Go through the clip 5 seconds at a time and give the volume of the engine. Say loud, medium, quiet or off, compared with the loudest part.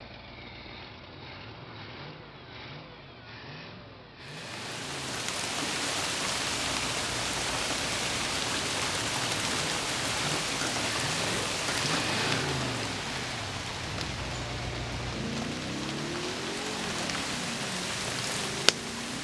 medium, medium, loud, loud.